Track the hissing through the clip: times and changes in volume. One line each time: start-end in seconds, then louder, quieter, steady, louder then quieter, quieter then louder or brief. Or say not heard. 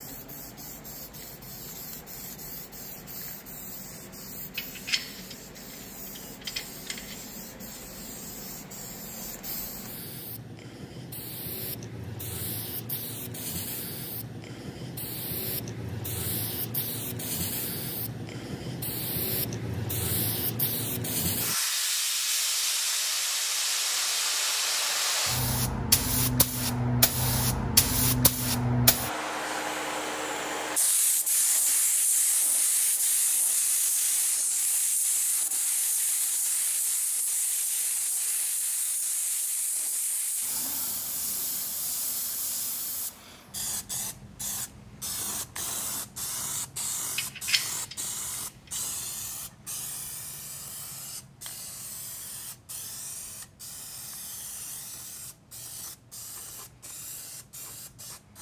0.0-58.3 louder then quieter.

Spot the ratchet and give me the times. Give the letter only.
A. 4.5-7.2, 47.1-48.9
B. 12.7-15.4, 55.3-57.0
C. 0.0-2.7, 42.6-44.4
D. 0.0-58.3
A.